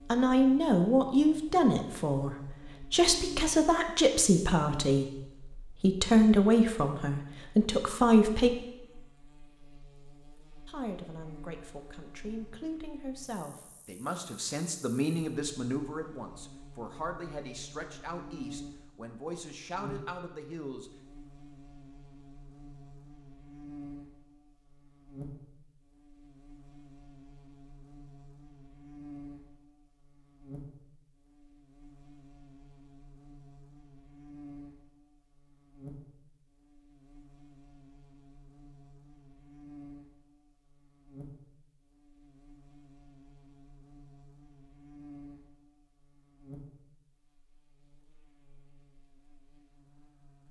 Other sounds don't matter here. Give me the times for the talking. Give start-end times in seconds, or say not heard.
0.1-8.5, 10.7-20.9.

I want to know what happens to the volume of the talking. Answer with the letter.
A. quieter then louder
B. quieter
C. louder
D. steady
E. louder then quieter
B.